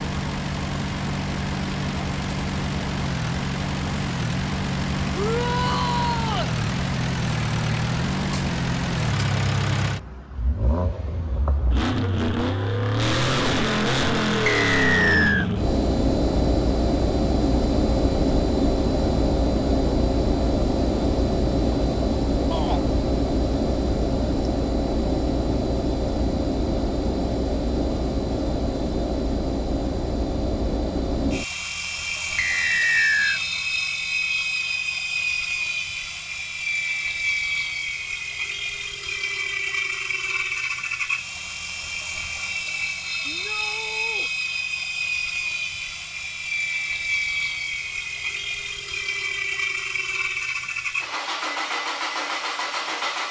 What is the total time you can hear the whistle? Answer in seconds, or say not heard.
2 s.